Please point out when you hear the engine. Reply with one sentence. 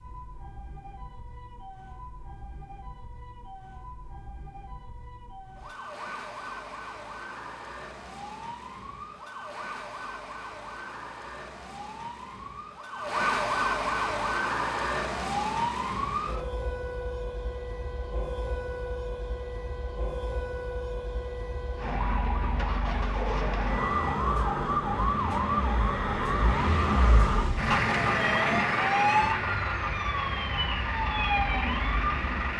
You can hear the engine from 21.8 to 32.5 s.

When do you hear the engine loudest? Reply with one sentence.
The volume of the engine peaks at 28 seconds.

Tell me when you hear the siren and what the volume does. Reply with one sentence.
You can hear the siren from 0.0 to 32.5 s, getting louder.